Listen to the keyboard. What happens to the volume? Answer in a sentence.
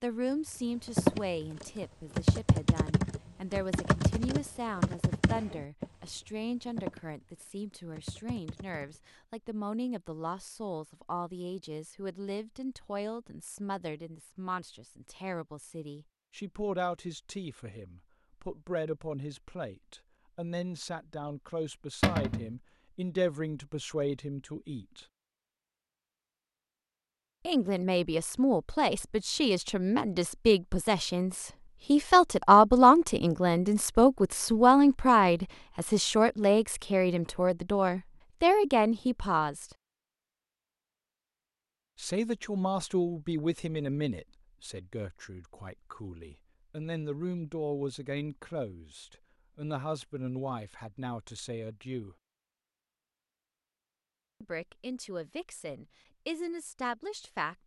The volume of the keyboard goes down.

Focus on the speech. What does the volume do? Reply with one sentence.
The loudness of the speech goes up, then down.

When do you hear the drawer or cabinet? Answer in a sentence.
The drawer or cabinet can be heard from 22.0 to 22.5 s.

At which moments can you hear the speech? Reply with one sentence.
The speech can be heard from 0.0 to 25.1 s, from 27.4 to 39.6 s, from 42.0 to 52.1 s and from 54.4 to 57.6 s.